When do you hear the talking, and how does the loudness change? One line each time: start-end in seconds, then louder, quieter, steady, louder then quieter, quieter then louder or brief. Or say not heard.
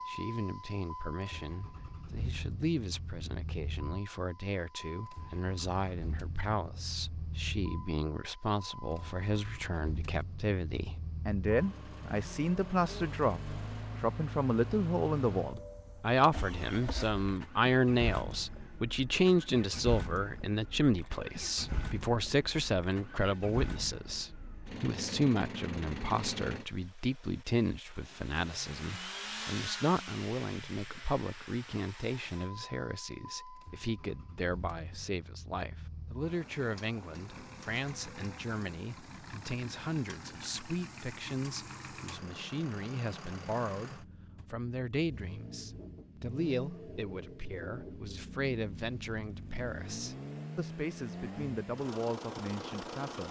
0.1-53.2 louder then quieter.